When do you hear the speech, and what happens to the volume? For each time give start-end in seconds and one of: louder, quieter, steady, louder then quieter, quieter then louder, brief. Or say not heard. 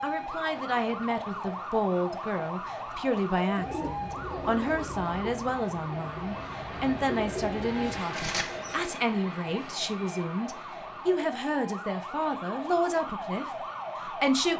0.0-14.5 steady.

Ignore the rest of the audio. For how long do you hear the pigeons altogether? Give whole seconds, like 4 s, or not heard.
5 s.